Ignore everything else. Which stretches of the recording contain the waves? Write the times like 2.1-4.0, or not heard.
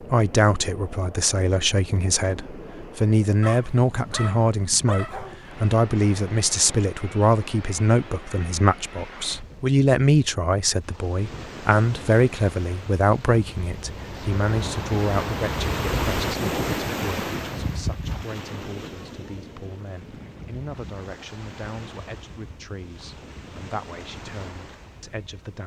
0.0-25.6.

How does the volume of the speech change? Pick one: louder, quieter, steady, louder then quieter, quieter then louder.
quieter.